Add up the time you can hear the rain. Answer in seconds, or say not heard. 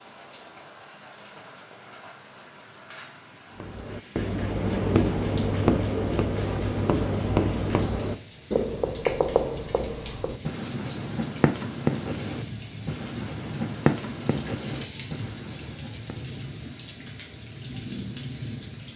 19 s.